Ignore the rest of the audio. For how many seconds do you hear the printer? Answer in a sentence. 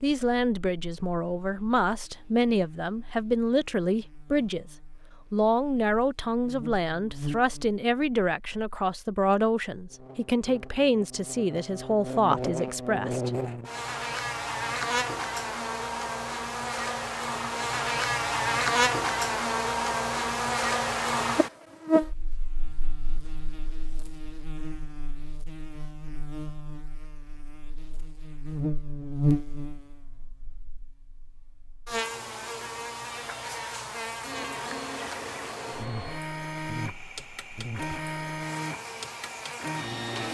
The printer can be heard for 6 seconds in total.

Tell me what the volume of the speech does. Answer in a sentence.
The volume of the speech stays about the same.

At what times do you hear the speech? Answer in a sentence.
The speech can be heard from 0.0 to 4.7 s and from 5.3 to 13.3 s.